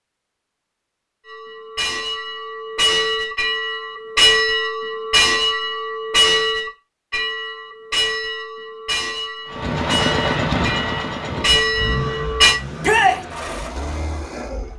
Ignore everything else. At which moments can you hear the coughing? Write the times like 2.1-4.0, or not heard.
not heard.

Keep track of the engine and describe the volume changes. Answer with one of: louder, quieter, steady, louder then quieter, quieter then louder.
quieter.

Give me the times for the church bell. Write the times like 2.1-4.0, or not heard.
1.2-12.6.